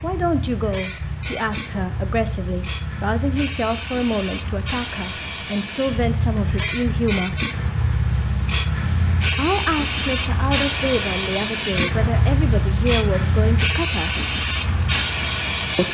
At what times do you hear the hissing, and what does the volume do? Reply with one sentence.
You can hear the hissing from 0.0 to 15.8 s, getting louder.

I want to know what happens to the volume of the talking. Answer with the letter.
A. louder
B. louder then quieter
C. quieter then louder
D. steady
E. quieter
D.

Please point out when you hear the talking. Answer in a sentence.
The talking can be heard from 0.0 to 7.4 s and from 9.3 to 14.2 s.